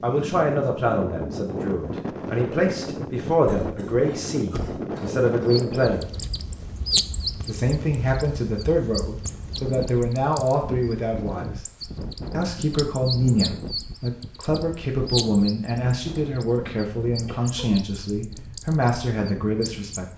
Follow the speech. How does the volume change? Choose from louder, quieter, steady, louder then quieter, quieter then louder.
steady.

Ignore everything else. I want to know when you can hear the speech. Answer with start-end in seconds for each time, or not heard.
0.0-6.1, 7.5-11.6, 12.3-20.1.